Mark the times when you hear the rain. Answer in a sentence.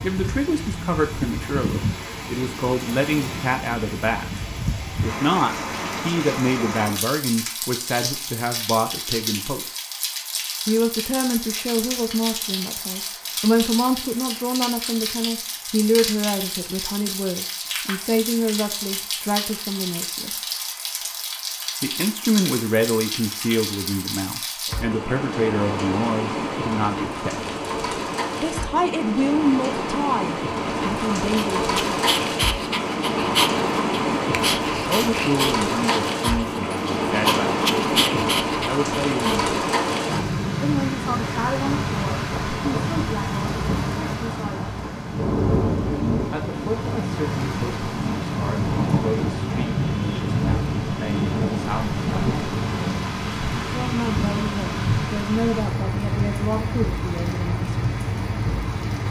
You can hear the rain from 0.0 to 59.0 s.